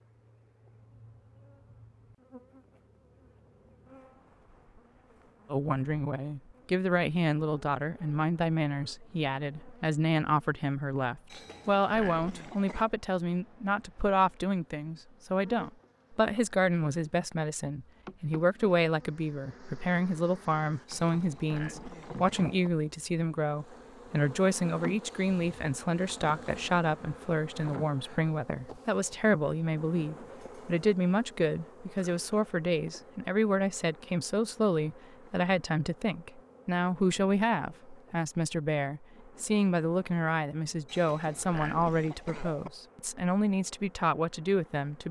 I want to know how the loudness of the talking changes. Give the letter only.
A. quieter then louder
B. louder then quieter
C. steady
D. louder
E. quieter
C.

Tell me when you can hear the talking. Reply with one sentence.
You can hear the talking from 5.5 to 45.0 s.